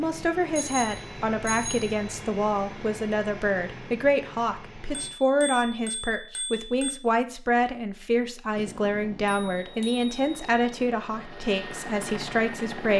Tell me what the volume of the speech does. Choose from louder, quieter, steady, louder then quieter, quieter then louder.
steady.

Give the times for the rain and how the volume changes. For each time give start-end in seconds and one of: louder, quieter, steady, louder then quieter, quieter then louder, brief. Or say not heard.
not heard.